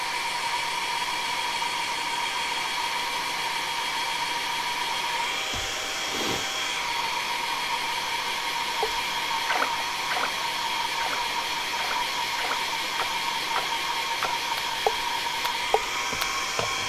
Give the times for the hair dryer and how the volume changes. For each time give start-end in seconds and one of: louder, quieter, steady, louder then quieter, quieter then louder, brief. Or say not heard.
0.0-16.8 steady.